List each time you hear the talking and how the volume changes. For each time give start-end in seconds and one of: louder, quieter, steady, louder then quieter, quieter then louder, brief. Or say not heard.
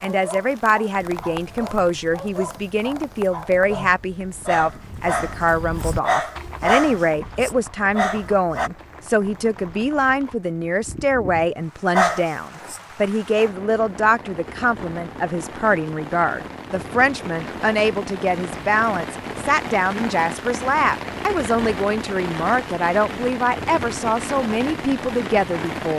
0.0-25.9 steady.